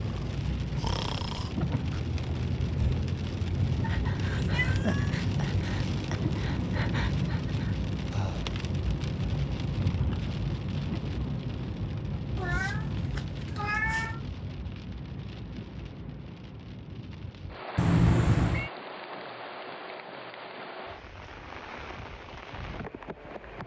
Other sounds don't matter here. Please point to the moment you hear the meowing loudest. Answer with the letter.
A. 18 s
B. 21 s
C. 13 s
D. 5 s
A.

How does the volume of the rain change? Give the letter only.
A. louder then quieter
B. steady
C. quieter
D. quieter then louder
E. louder
C.